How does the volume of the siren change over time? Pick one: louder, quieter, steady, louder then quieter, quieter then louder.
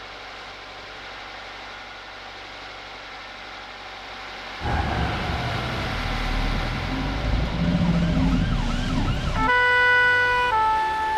louder.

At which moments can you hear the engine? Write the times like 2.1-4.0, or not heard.
0.0-11.1.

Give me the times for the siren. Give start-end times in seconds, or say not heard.
4.6-11.1.